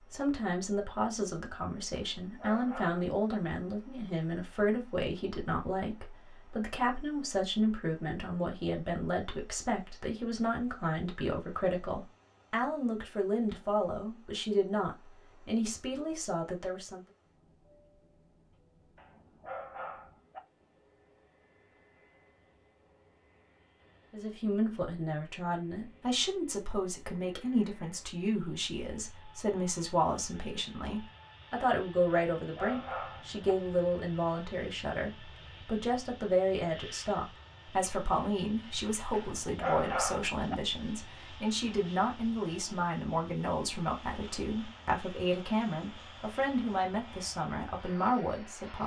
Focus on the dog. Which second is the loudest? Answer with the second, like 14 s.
40 s.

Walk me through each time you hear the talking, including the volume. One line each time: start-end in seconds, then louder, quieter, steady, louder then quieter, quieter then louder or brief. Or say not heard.
0.1-17.1 steady
24.1-48.8 steady.